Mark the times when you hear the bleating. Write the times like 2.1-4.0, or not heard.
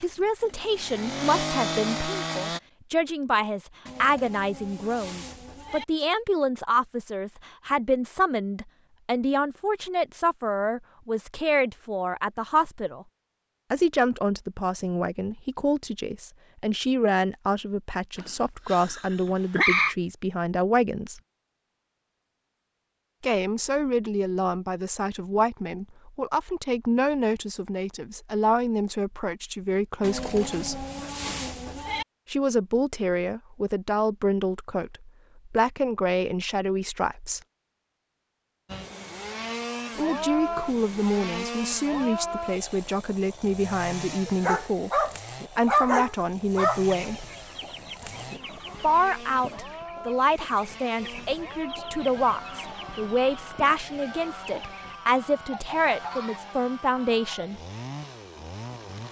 3.9-5.8, 30.0-32.0.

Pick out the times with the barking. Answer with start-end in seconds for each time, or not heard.
18.1-19.9, 44.2-46.9.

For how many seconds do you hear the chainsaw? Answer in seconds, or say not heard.
23 s.